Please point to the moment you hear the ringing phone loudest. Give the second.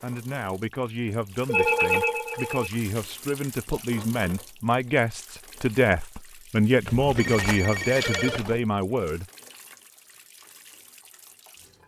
2 s.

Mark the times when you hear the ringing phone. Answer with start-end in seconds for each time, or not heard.
1.4-2.7, 6.8-8.6.